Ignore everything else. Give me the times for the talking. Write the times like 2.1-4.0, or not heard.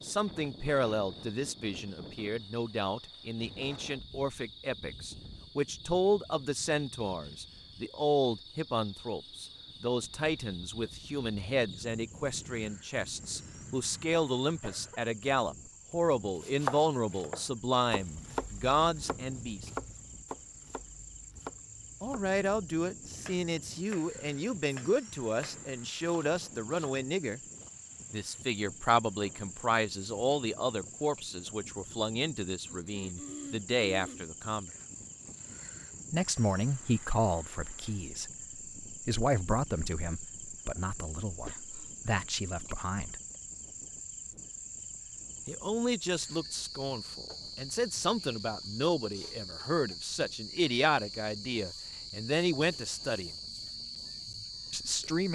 0.0-19.7, 22.0-27.4, 28.1-34.7, 36.1-43.2, 45.5-53.3, 54.7-55.2.